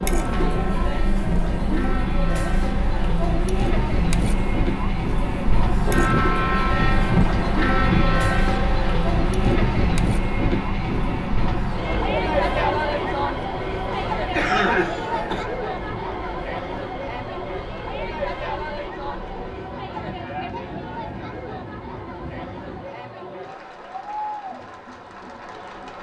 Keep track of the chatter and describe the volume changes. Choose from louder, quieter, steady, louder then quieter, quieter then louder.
quieter.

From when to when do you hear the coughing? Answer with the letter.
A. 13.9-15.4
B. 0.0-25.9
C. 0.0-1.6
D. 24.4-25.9
A.